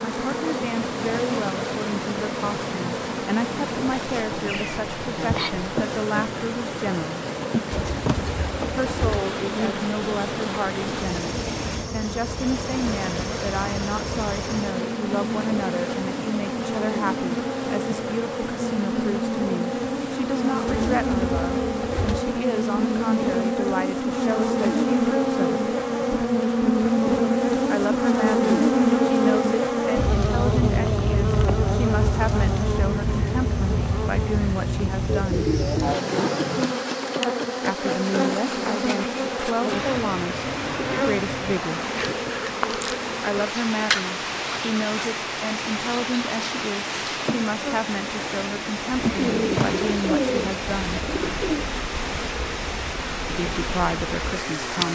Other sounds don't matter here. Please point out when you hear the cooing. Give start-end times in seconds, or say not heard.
7.7-9.2, 20.6-22.2, 35.0-36.8, 48.9-51.7.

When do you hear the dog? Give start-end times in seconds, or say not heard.
not heard.